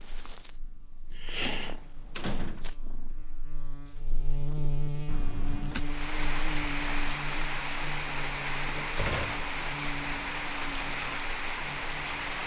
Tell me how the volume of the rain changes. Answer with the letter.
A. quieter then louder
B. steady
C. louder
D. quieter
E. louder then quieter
B.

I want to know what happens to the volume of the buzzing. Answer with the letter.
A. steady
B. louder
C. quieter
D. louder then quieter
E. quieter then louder
D.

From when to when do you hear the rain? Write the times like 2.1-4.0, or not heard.
5.7-12.4.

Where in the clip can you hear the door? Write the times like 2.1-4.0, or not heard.
1.2-2.6, 5.0-5.8, 8.7-9.4.